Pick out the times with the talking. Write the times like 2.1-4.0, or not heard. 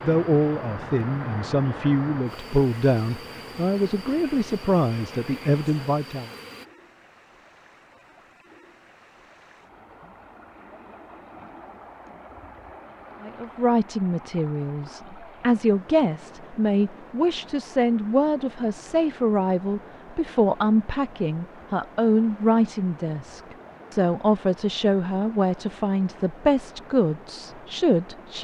0.0-6.3, 13.2-28.3.